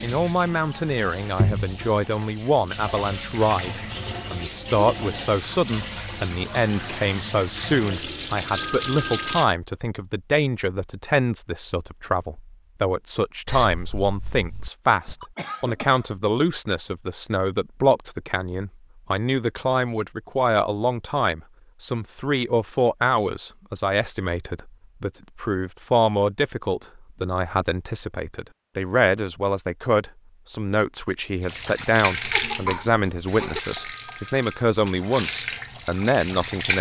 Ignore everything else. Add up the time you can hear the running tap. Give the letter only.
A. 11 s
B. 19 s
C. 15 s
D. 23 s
C.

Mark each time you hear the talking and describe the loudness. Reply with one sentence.
You can hear the talking from 0.0 to 36.7 s, at a steady volume.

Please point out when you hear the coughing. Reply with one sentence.
You can hear the coughing from 15.3 to 16.1 s and from 31.6 to 33.6 s.